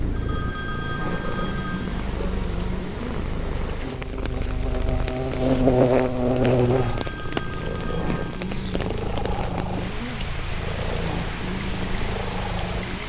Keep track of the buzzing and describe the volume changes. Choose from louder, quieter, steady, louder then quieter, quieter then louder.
louder then quieter.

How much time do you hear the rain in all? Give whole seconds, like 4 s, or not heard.
13 s.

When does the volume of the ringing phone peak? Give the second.
1 s.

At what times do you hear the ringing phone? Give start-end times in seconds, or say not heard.
0.1-2.0, 6.8-8.6.